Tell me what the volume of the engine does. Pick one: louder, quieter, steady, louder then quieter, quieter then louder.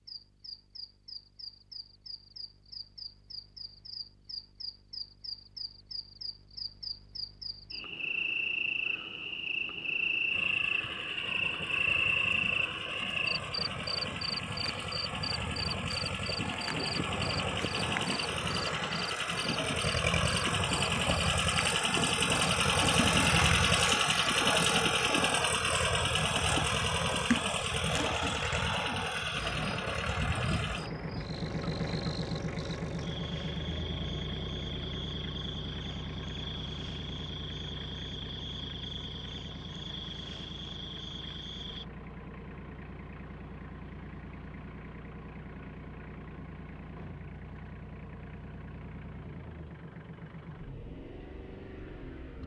louder then quieter.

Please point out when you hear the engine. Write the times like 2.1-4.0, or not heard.
10.3-52.4.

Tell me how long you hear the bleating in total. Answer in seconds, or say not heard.
not heard.